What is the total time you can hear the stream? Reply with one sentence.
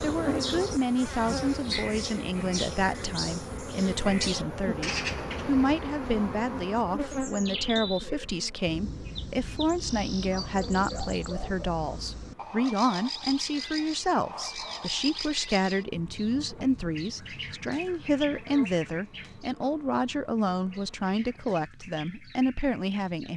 You can't hear the stream here.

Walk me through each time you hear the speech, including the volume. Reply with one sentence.
The speech can be heard from 0.0 to 23.3 s, at a steady volume.